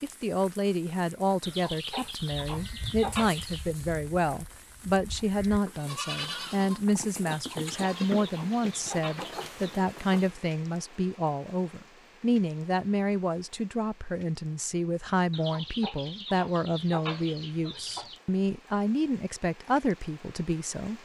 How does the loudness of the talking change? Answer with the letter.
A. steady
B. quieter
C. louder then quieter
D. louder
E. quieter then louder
A.